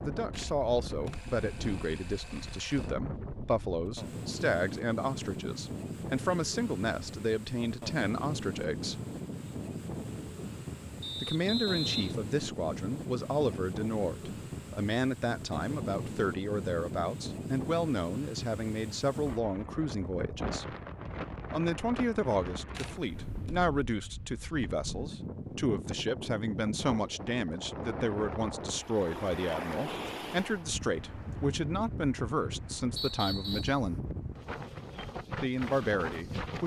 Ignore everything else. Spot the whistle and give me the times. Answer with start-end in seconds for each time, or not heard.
11.0-12.2, 33.0-33.8.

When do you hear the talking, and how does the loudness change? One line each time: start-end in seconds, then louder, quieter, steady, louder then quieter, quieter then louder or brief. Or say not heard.
0.0-8.9 steady
11.2-20.6 steady
21.5-34.0 steady
35.4-36.6 brief.